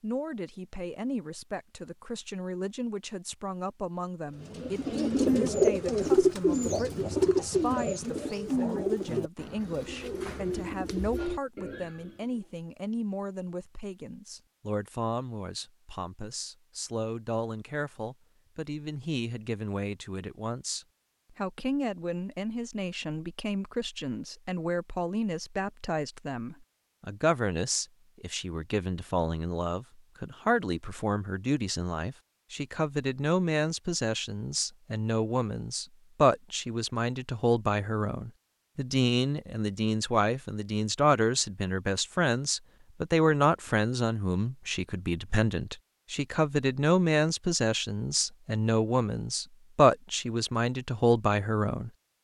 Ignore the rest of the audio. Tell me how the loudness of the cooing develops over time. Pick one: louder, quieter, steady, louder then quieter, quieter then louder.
quieter.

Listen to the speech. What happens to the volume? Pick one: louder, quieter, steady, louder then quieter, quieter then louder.
louder.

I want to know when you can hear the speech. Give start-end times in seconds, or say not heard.
0.0-51.9.